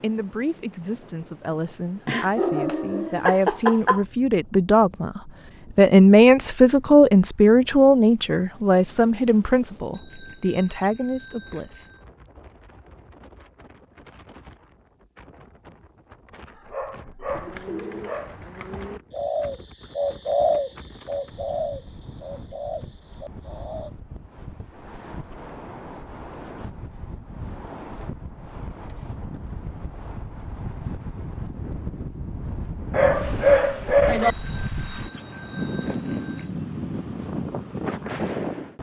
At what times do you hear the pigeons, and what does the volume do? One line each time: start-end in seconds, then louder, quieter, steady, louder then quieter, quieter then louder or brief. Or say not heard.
17.3-23.9 louder then quieter.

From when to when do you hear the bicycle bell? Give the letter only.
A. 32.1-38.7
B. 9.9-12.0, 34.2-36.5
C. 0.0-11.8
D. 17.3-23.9
B.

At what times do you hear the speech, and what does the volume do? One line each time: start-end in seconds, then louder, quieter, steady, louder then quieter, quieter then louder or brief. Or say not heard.
0.0-11.8 louder then quieter.